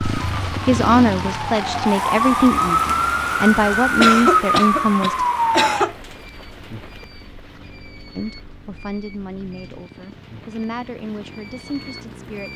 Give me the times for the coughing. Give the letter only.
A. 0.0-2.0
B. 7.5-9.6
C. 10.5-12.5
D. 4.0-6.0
D.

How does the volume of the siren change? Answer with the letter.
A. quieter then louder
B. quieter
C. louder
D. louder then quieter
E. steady
C.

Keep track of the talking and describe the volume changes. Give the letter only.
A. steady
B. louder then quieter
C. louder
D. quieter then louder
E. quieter
E.